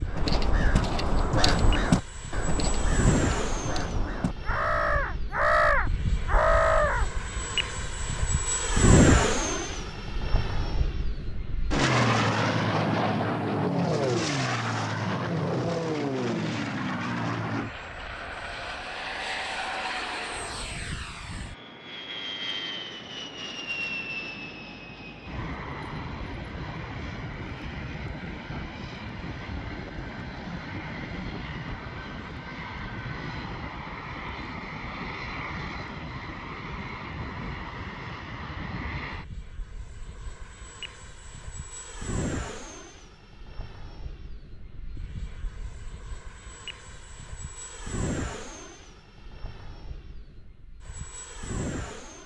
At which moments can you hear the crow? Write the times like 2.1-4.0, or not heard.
0.1-7.0.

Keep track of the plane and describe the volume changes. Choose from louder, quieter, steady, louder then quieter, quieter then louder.
quieter.